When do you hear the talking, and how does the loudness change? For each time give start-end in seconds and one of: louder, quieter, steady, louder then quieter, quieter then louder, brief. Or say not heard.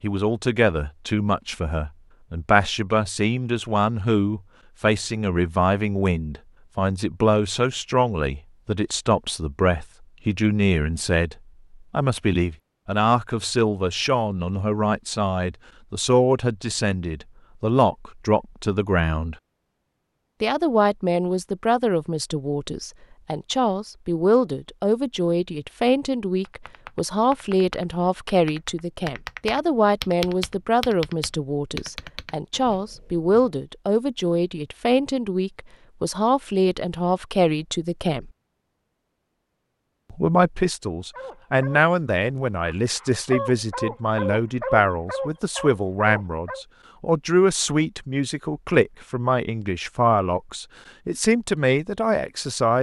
0.0-19.4 steady
20.4-38.3 steady
40.1-52.7 steady.